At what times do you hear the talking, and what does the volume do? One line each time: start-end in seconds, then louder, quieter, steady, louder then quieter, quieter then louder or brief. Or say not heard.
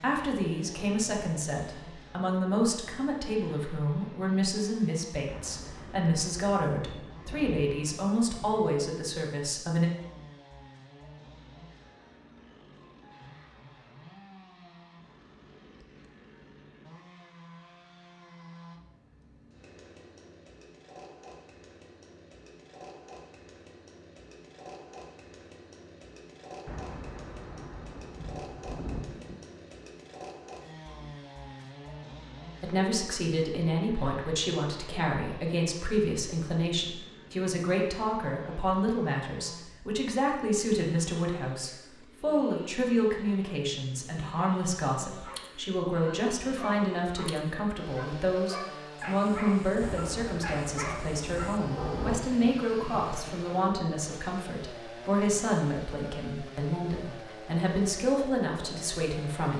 0.0-9.9 steady
32.6-59.5 steady.